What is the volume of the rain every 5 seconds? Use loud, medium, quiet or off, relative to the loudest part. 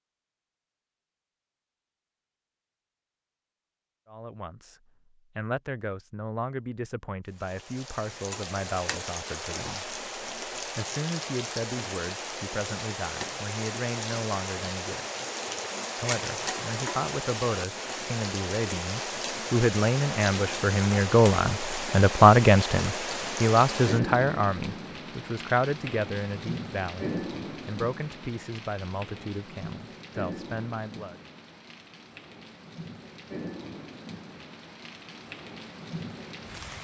off, medium, loud, loud, loud, medium, medium, medium.